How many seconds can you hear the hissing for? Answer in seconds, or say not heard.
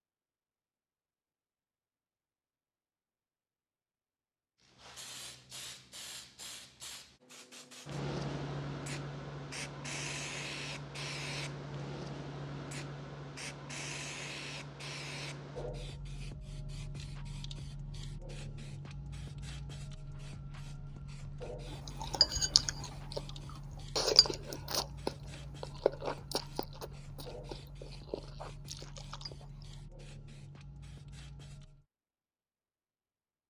27 s.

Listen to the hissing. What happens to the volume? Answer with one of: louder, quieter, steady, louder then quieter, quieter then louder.
quieter.